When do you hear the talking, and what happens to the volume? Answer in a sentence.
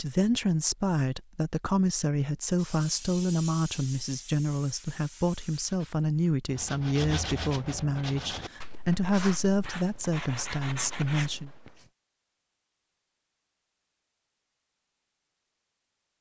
The talking can be heard from 0.0 to 11.5 s, at a steady volume.